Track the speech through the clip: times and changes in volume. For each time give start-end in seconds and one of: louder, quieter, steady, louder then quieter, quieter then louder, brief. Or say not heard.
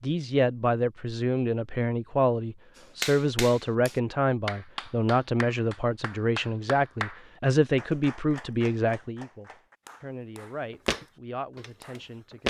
0.0-12.4 quieter.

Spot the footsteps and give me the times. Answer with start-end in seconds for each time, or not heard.
10.8-12.4.